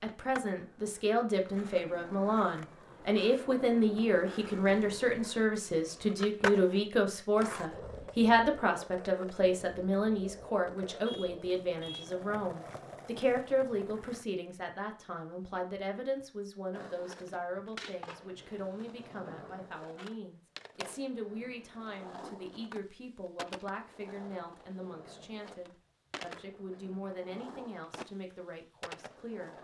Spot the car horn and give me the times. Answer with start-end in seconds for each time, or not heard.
11.1-12.2.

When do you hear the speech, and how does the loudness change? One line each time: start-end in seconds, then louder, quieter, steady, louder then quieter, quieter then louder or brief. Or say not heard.
0.0-29.5 quieter.